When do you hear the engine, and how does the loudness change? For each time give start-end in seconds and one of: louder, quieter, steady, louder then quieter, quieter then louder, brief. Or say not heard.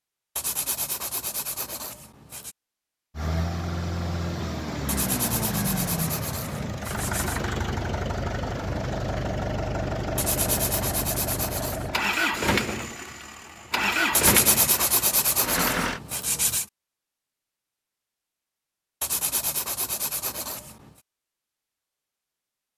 3.1-16.0 steady.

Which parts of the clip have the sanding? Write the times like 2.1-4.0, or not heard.
0.3-2.5, 4.8-7.4, 10.2-11.9, 14.1-16.6, 19.0-20.9.